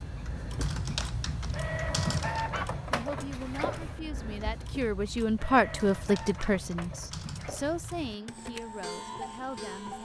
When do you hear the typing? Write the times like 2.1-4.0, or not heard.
0.5-2.5, 5.7-7.7.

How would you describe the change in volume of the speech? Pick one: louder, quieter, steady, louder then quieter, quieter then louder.
louder then quieter.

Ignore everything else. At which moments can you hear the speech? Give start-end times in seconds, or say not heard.
2.9-10.0.